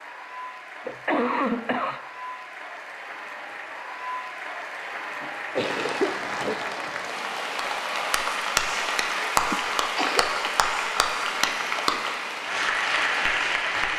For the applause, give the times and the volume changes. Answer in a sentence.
The applause can be heard from 0.0 to 13.9 s, getting louder.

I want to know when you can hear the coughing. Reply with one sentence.
The coughing can be heard from 0.8 to 2.0 s, from 5.2 to 6.5 s and from 9.5 to 10.4 s.